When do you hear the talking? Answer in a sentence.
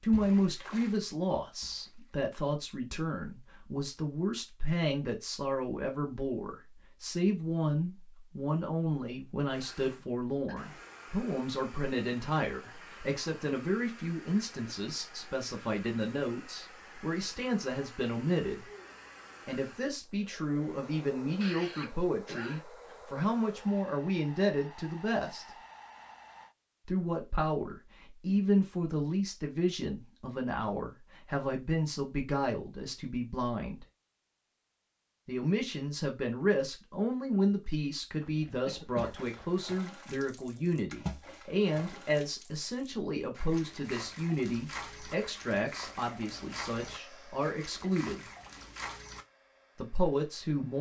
You can hear the talking from 0.0 to 18.6 s, from 19.4 to 25.4 s, from 26.9 to 33.9 s, from 35.2 to 48.2 s and from 49.8 to 50.7 s.